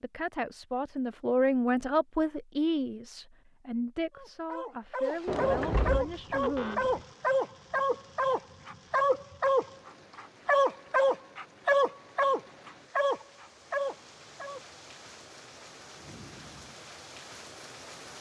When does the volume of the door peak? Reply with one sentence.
The volume of the door peaks at 6 seconds.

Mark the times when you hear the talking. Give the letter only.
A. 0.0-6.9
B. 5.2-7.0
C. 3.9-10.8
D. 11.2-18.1
A.